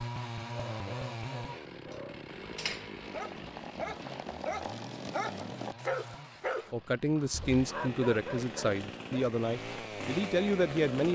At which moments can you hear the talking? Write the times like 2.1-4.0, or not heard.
6.7-11.1.